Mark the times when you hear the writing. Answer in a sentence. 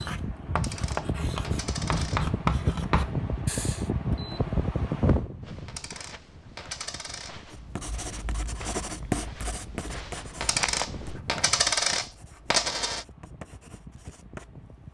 The writing can be heard from 0.0 to 3.9 s and from 7.5 to 14.7 s.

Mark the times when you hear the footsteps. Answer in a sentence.
You can hear the footsteps from 5.4 to 11.2 s.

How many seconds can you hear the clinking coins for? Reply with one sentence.
You can hear the clinking coins for 6 seconds altogether.